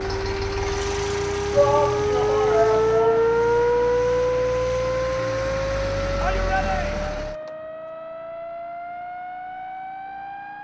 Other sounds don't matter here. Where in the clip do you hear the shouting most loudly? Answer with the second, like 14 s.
2 s.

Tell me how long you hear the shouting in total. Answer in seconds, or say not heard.
3 s.